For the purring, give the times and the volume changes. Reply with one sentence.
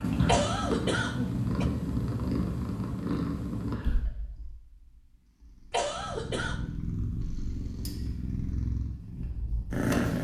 You can hear the purring from 0.0 to 10.2 s, getting quieter then louder.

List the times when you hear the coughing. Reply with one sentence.
The coughing can be heard from 0.2 to 1.7 s and from 5.7 to 6.7 s.